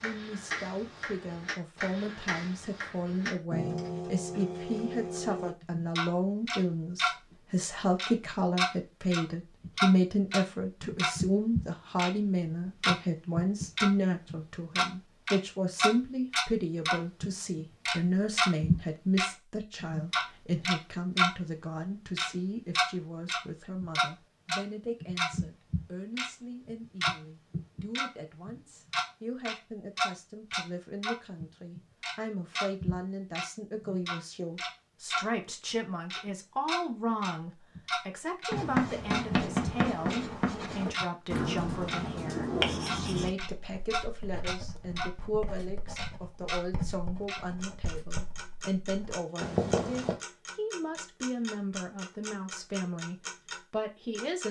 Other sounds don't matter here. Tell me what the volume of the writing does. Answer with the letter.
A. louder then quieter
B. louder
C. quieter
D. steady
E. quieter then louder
E.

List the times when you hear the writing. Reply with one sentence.
You can hear the writing from 38.5 to 50.2 s.